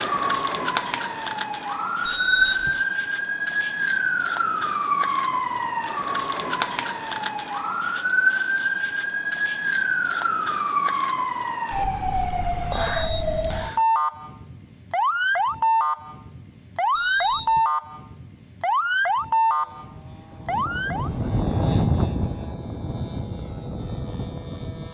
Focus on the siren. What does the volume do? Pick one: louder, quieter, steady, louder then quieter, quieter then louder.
steady.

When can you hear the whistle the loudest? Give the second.
2 s.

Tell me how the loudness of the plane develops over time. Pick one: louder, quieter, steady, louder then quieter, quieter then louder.
louder then quieter.